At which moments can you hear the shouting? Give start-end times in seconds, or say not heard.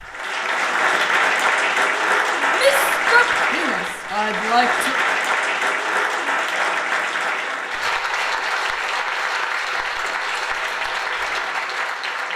2.5-5.0.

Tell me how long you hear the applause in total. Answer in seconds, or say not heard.
12 s.